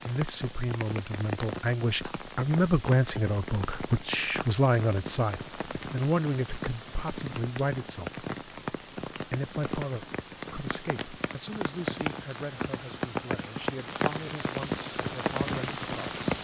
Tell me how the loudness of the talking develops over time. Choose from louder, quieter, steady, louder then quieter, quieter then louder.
quieter.